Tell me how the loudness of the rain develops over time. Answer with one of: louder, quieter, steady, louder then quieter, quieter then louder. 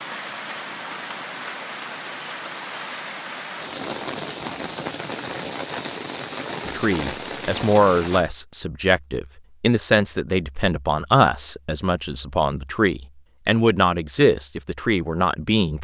steady.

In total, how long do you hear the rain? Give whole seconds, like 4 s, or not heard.
8 s.